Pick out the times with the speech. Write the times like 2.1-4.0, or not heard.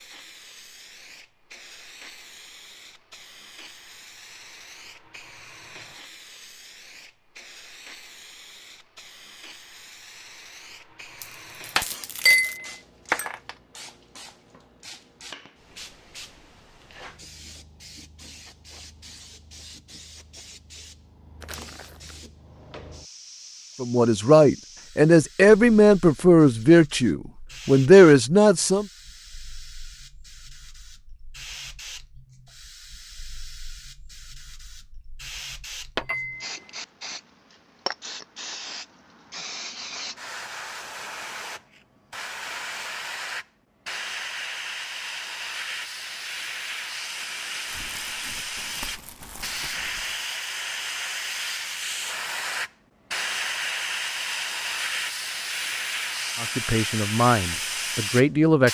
23.8-28.9, 56.4-58.7.